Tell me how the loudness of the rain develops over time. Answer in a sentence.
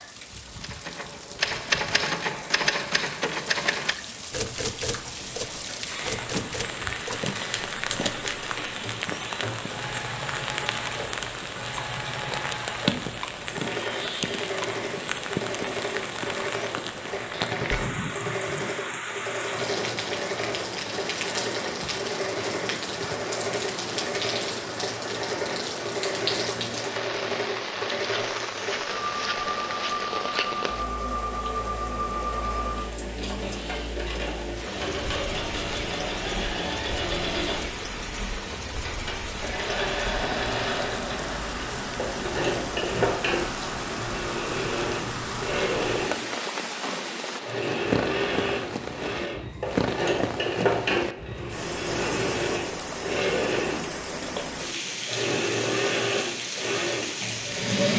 The loudness of the rain stays about the same.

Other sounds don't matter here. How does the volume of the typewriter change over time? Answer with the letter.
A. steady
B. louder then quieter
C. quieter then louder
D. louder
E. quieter
E.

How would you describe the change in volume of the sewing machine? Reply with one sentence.
The loudness of the sewing machine goes up.